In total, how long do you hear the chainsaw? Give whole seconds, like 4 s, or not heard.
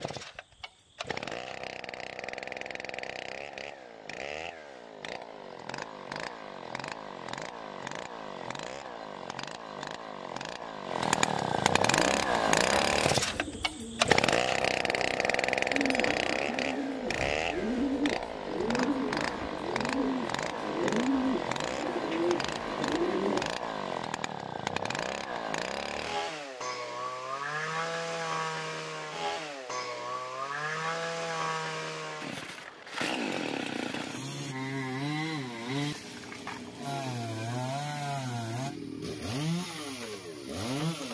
41 s.